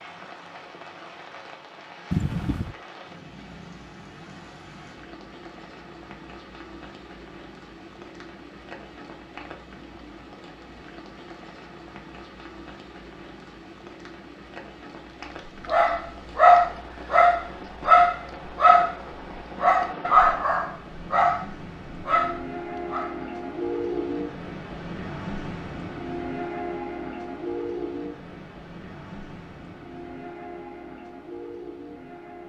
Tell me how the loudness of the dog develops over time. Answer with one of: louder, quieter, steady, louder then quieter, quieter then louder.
quieter.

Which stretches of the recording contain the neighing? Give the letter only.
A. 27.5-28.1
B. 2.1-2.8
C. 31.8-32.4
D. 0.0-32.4
B.